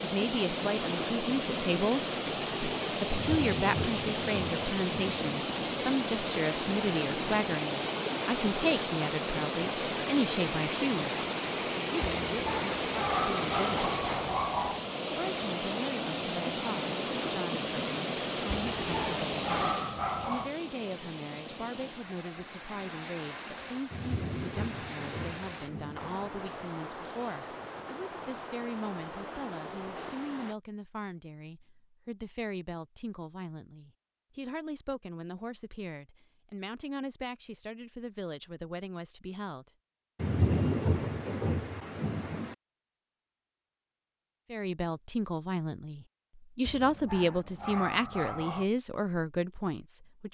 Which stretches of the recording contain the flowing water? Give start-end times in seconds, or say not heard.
0.0-30.6.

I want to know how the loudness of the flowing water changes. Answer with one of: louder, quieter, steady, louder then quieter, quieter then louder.
quieter.